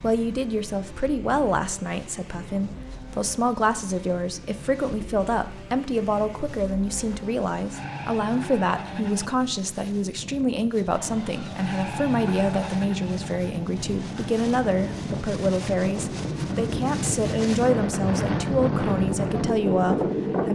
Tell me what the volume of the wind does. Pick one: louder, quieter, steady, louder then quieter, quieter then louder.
louder.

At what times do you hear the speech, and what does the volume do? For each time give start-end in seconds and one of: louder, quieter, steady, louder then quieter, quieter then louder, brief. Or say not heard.
0.0-20.5 steady.